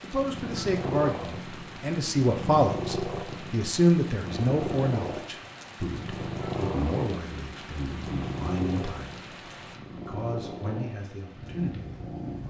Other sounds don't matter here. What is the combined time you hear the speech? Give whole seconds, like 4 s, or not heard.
11 s.